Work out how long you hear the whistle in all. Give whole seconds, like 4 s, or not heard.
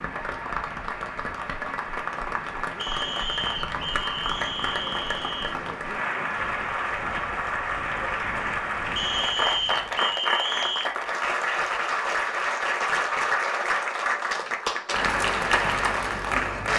5 s.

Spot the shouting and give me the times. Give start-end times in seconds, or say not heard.
not heard.